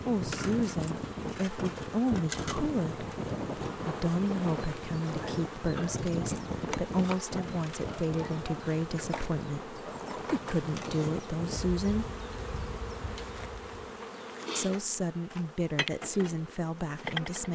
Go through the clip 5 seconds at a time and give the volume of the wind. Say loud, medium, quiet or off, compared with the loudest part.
loud, loud, medium, off.